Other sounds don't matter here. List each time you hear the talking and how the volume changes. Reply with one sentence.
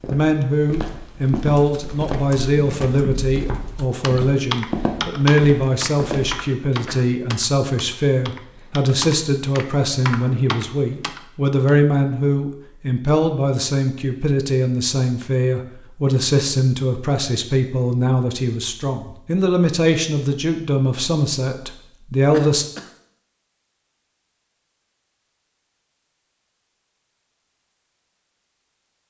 The talking can be heard from 0.1 to 22.6 s, at a steady volume.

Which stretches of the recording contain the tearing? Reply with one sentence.
You can't hear the tearing here.